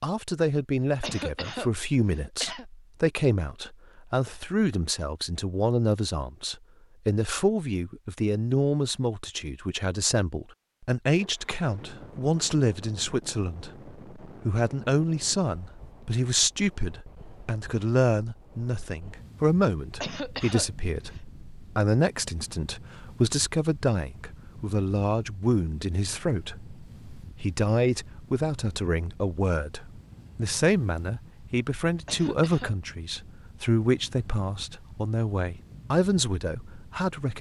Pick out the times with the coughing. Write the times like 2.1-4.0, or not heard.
1.0-2.6, 20.0-21.2, 32.0-32.8.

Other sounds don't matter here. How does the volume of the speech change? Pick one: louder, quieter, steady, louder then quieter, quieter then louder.
steady.